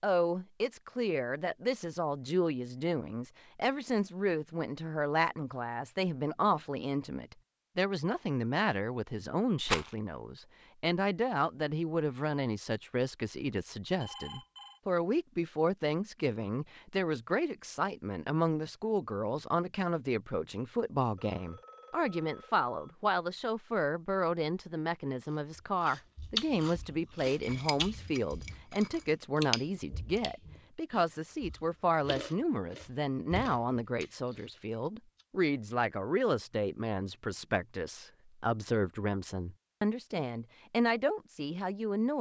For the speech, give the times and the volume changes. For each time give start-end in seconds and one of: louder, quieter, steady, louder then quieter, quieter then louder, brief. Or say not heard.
0.0-42.1 steady.